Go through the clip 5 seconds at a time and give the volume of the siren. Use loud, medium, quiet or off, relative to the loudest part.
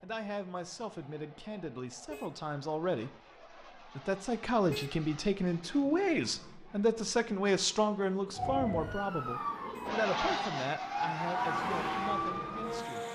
off, loud, loud.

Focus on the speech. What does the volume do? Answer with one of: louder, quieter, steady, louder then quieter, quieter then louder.
louder then quieter.